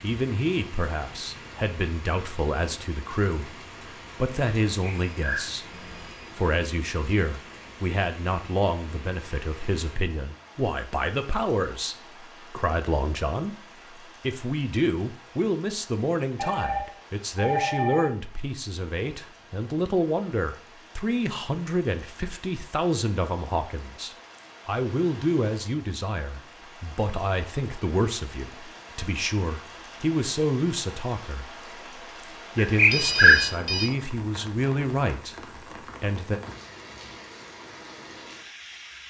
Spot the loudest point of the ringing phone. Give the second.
33 s.